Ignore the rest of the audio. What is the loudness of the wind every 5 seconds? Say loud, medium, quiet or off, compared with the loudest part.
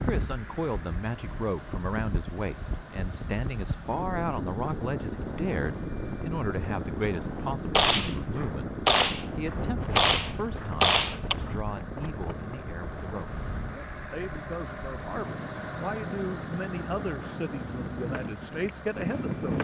loud, loud, medium, loud.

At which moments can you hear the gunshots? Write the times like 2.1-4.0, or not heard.
7.8-11.3.